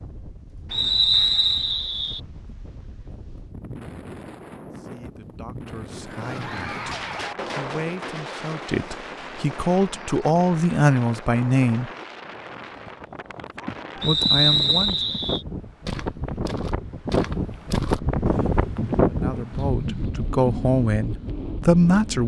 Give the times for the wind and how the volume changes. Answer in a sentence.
You can hear the wind from 0.0 to 22.2 s, getting louder.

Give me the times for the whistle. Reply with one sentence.
You can hear the whistle from 0.7 to 2.2 s and from 14.0 to 15.4 s.